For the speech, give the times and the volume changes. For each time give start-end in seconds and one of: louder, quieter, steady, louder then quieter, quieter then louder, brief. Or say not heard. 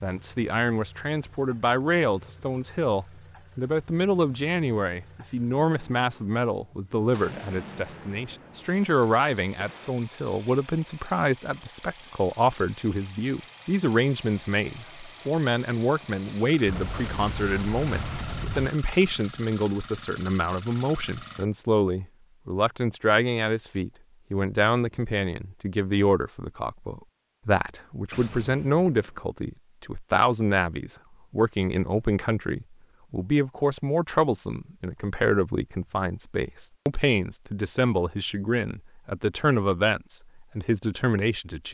0.0-41.6 steady.